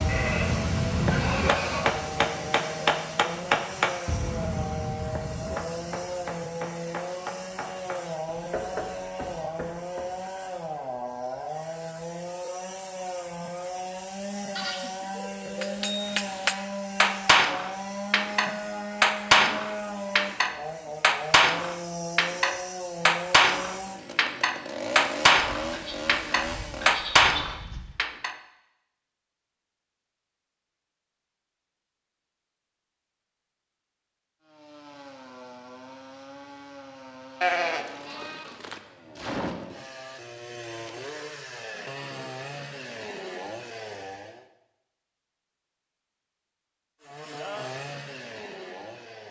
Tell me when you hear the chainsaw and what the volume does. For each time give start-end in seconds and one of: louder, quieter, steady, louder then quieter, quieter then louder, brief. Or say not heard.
0.0-27.2 steady
34.4-44.5 louder
47.0-49.2 brief.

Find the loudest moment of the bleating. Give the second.
38 s.